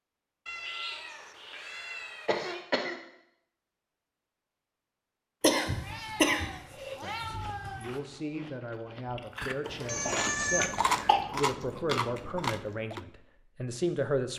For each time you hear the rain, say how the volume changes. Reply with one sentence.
The rain can't be heard in this clip.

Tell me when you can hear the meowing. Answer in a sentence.
The meowing can be heard from 0.5 to 2.6 s, from 5.7 to 8.0 s and from 9.8 to 10.7 s.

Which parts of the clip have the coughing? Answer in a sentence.
You can hear the coughing from 2.2 to 3.0 s, from 5.4 to 7.0 s and from 9.7 to 11.2 s.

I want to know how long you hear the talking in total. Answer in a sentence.
You can hear the talking for 7 seconds altogether.